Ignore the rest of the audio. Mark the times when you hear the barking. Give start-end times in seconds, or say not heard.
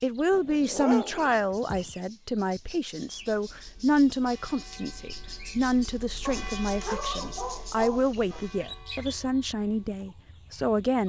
0.3-1.9, 6.2-8.4.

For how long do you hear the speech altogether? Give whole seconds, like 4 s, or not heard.
11 s.